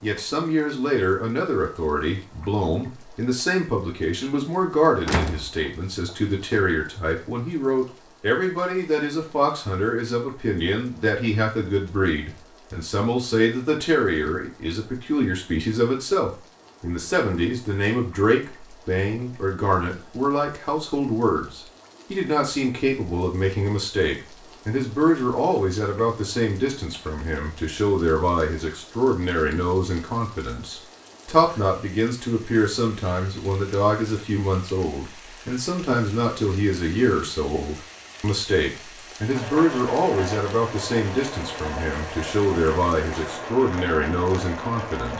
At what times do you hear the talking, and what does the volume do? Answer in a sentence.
The talking can be heard from 0.0 to 45.1 s, at a steady volume.